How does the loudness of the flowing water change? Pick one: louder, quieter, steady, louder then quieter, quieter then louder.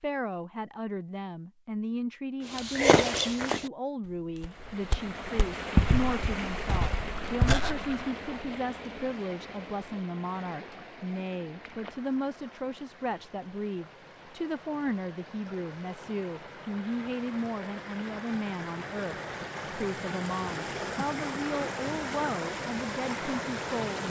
quieter then louder.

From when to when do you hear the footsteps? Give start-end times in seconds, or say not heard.
2.5-8.0.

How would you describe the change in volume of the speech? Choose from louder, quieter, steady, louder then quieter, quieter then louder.
steady.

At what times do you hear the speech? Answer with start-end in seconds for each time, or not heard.
0.0-24.0.